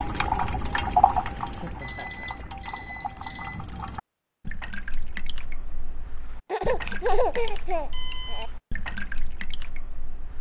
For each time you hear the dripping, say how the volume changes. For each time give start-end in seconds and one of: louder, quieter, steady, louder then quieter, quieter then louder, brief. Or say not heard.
0.0-10.3 quieter.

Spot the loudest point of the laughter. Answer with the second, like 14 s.
7 s.